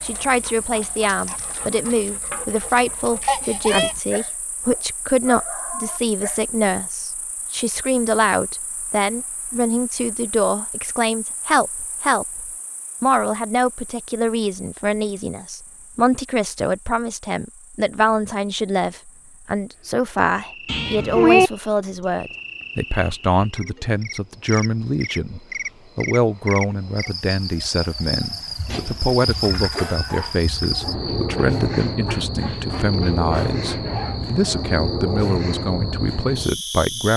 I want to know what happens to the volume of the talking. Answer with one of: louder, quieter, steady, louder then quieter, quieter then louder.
steady.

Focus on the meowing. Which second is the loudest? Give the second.
21 s.